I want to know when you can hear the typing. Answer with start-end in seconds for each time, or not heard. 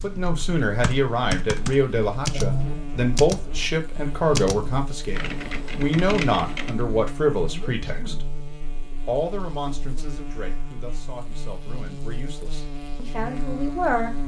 0.0-6.8.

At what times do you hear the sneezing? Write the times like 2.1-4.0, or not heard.
2.3-2.9, 7.3-8.2.